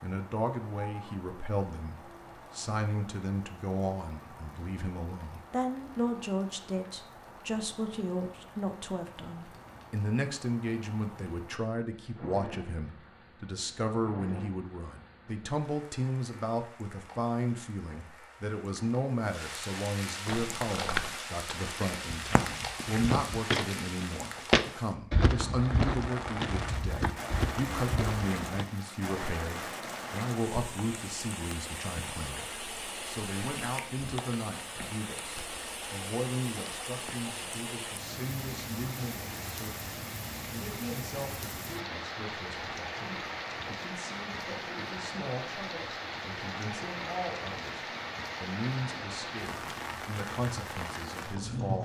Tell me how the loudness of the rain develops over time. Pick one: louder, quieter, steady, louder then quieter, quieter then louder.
louder.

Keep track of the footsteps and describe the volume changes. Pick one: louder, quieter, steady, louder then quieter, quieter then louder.
louder then quieter.